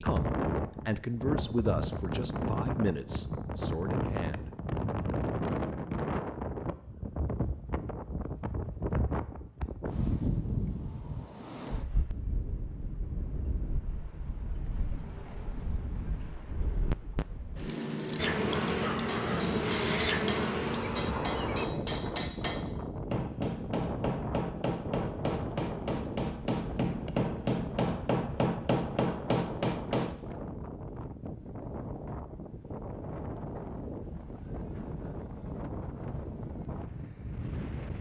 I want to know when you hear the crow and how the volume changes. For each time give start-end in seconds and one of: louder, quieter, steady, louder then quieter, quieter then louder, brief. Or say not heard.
not heard.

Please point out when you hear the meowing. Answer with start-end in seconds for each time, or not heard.
not heard.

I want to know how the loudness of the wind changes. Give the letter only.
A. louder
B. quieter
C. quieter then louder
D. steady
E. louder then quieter
B.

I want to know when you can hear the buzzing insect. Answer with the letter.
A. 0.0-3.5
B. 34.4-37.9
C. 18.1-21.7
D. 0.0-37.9
C.